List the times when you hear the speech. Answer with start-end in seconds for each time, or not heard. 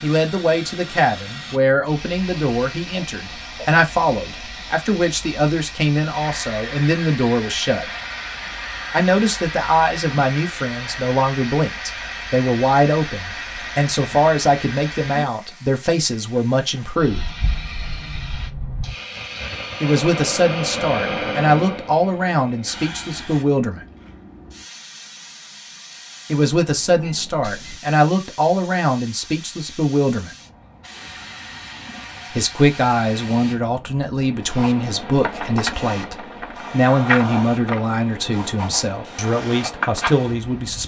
0.0-7.9, 8.9-17.2, 19.8-23.9, 26.3-30.4, 32.3-40.8.